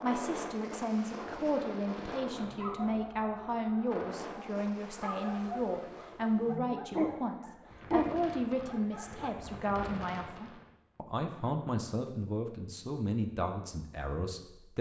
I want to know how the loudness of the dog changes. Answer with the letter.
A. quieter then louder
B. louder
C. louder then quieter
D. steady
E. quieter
B.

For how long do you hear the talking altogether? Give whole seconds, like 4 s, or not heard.
15 s.